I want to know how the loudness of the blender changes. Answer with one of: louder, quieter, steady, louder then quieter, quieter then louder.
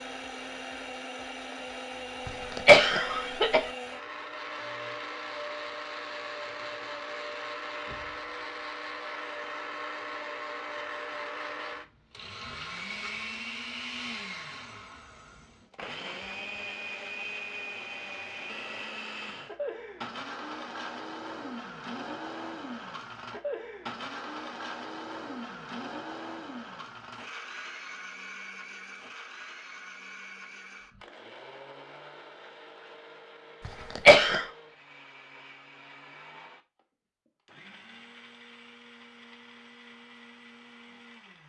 quieter.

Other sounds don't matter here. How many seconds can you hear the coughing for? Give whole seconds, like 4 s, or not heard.
2 s.